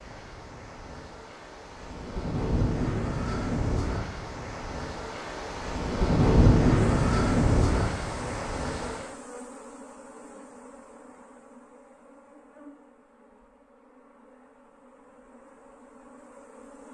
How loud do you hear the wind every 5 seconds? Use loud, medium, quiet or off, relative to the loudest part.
medium, loud, off, off.